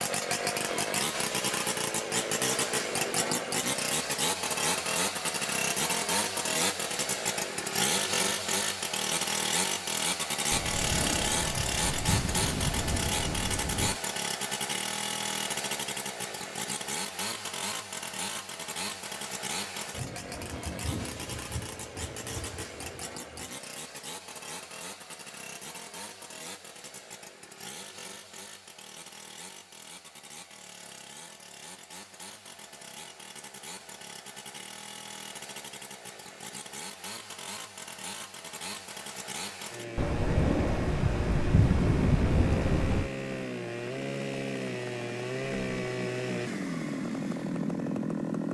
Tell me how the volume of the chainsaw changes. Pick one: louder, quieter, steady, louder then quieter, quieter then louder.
quieter then louder.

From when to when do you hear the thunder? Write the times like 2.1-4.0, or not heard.
10.5-14.0, 19.9-23.5, 40.0-43.1.